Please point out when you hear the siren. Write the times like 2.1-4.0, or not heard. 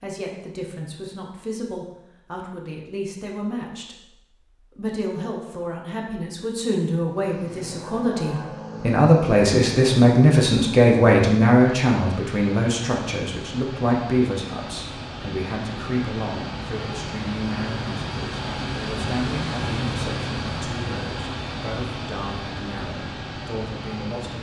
not heard.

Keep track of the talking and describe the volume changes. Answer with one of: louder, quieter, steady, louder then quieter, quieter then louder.
louder then quieter.